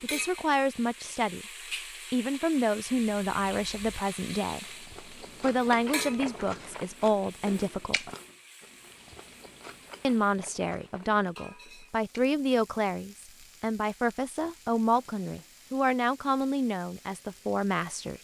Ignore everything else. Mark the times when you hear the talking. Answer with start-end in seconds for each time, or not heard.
0.0-1.4, 2.1-8.1, 10.0-18.1.